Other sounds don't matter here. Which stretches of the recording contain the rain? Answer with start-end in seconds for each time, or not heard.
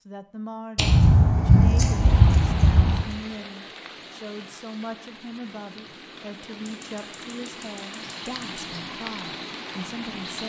1.9-10.4.